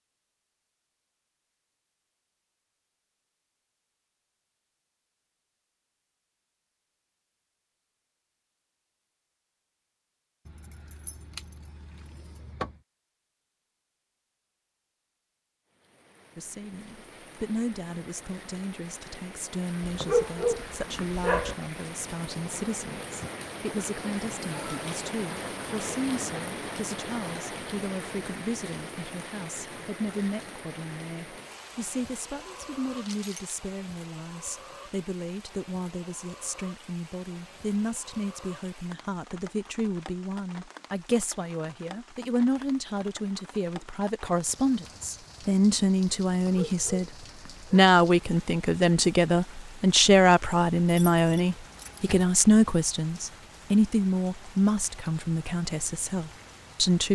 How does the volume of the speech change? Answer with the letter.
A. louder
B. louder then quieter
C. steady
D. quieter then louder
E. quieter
A.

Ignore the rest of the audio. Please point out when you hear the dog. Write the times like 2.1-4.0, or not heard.
19.8-21.6, 46.3-47.9.